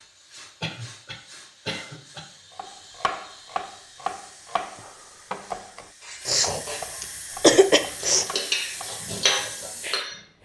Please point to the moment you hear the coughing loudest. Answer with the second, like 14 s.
8 s.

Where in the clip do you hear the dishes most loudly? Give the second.
9 s.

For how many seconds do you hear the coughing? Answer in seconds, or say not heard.
4 s.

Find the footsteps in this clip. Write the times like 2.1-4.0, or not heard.
not heard.